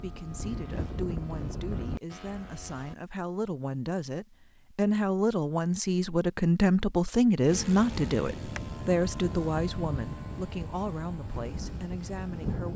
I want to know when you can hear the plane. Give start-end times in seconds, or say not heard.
0.0-3.0, 7.5-12.7.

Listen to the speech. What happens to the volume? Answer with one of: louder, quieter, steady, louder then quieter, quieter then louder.
louder then quieter.